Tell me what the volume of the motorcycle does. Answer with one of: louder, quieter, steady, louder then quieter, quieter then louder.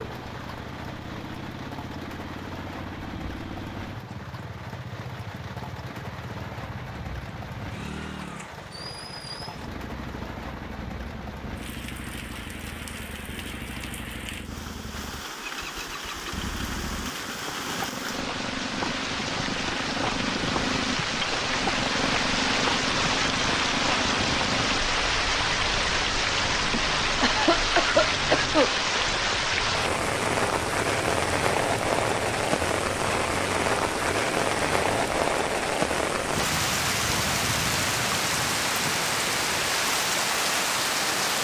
louder then quieter.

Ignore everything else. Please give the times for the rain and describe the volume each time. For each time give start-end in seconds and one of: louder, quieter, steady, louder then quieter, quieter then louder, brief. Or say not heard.
0.0-41.3 louder.